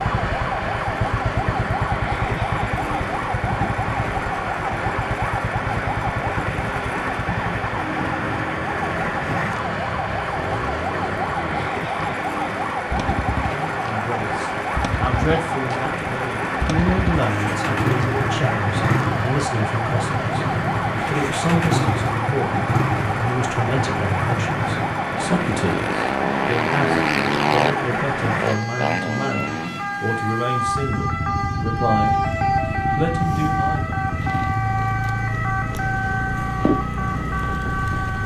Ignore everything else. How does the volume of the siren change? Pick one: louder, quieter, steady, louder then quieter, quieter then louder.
steady.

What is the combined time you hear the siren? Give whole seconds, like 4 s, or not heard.
38 s.